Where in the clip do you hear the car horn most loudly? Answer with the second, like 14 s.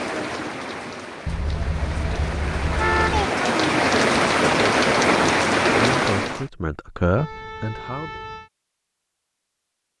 3 s.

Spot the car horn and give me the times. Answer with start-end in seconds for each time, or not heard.
1.2-3.3, 7.2-8.5.